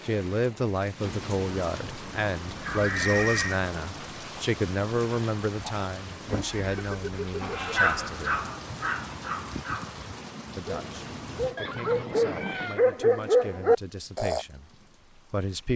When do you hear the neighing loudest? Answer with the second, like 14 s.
3 s.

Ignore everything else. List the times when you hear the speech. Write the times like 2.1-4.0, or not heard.
0.1-8.4, 10.6-15.7.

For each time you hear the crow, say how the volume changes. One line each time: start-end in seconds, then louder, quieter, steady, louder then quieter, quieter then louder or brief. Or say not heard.
not heard.